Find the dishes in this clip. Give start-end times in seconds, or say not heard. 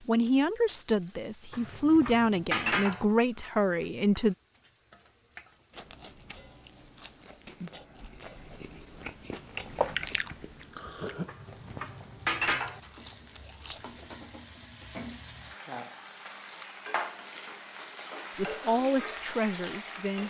1.5-3.0, 11.2-12.8.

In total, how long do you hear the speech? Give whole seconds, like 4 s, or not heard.
6 s.